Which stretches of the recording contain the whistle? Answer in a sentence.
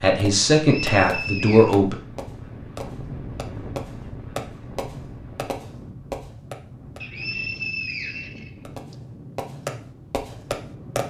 You can hear the whistle from 0.8 to 1.8 s and from 7.0 to 8.9 s.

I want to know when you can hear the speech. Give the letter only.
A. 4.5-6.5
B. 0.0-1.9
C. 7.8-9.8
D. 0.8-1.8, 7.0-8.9
B.